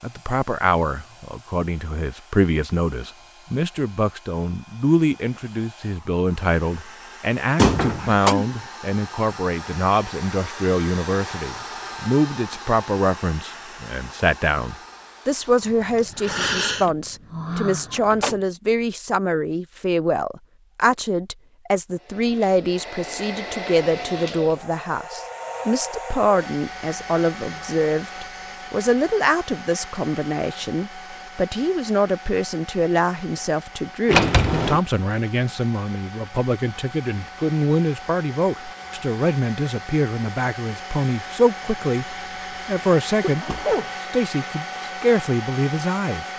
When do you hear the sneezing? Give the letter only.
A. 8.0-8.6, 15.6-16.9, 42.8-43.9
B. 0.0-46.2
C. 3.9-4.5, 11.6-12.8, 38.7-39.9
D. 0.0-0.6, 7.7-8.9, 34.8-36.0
A.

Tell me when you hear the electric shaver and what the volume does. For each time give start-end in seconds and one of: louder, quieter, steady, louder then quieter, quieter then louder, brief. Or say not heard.
not heard.